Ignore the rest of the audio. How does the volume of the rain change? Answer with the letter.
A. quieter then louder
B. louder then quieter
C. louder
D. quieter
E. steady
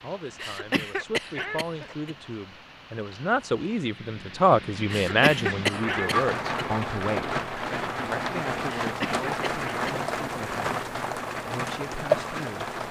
C.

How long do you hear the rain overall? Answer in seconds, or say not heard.
13 s.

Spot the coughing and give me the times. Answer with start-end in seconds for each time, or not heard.
0.3-2.1, 4.8-6.7, 8.8-9.9.